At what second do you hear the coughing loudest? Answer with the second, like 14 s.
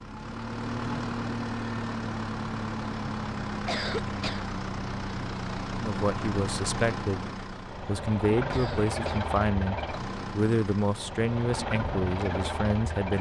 4 s.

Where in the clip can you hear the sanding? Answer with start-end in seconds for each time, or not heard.
not heard.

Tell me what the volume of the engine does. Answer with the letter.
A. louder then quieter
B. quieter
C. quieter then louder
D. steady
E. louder
D.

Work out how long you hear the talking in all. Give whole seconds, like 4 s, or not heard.
7 s.